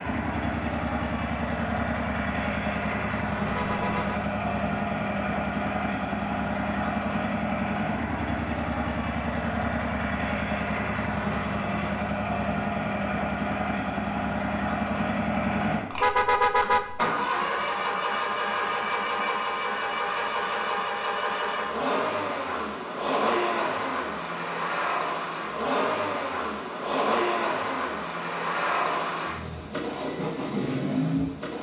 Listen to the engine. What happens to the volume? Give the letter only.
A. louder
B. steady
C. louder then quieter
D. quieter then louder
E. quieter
B.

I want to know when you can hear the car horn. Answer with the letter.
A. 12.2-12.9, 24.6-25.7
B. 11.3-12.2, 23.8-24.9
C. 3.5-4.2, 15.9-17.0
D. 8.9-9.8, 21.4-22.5
C.